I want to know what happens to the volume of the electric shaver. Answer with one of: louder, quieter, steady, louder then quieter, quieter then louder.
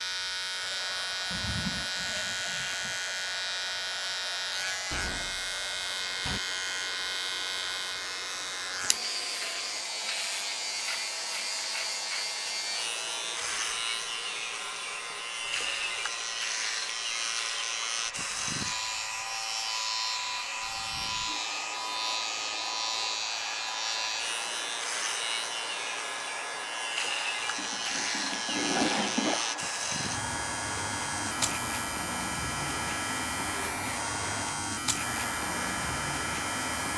steady.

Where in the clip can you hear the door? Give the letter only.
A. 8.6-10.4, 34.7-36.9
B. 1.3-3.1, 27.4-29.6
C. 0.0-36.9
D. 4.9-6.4
D.